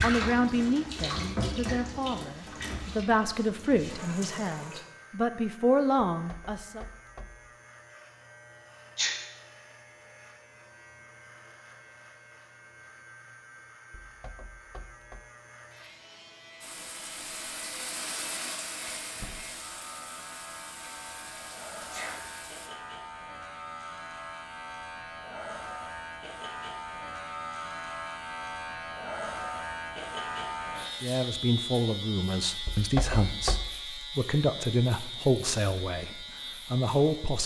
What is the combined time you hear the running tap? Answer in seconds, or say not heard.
11 s.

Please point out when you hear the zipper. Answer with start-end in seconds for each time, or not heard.
not heard.